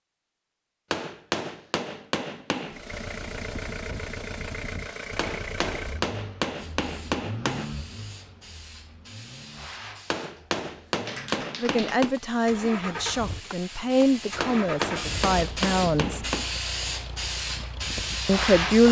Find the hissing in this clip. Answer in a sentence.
The hissing can be heard from 6.5 to 18.8 s.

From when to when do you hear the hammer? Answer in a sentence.
The hammer can be heard from 0.9 to 2.8 s, from 5.2 to 7.7 s, from 10.1 to 12.2 s and from 14.4 to 16.5 s.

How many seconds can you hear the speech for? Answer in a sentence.
The speech can be heard for 5 seconds in total.